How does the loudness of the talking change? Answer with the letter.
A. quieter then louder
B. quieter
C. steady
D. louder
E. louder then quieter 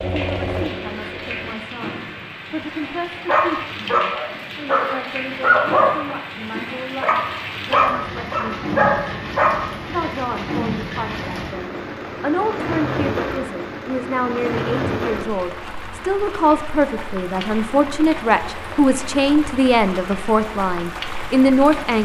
D.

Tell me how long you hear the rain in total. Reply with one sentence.
You can hear the rain for 22 seconds altogether.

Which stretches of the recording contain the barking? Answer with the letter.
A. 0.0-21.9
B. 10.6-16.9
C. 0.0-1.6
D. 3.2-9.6
D.